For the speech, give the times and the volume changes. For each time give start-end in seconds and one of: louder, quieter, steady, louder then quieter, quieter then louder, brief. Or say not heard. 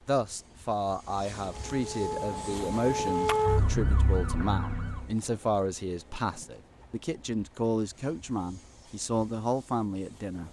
0.1-10.4 steady.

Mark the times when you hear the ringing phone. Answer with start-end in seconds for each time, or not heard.
not heard.